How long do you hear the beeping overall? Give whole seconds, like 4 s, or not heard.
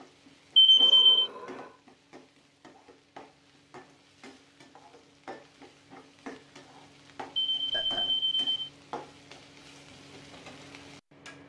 2 s.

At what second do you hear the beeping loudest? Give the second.
1 s.